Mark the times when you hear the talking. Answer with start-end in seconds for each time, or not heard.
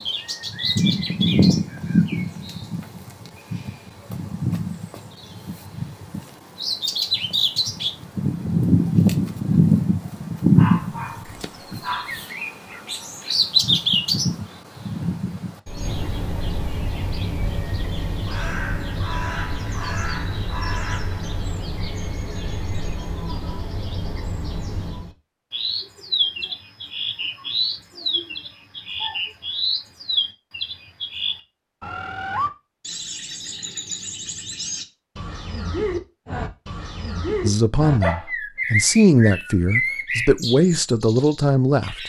37.4-42.0.